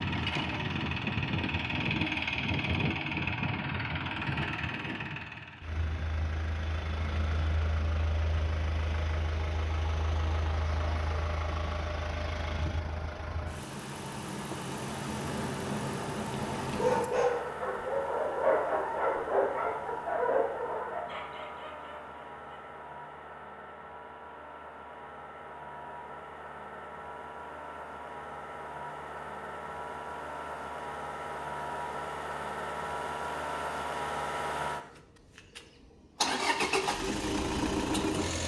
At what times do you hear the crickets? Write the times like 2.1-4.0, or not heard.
not heard.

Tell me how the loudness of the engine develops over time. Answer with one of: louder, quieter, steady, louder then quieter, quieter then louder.
quieter then louder.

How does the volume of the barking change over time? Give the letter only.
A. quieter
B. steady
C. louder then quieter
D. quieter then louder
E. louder
A.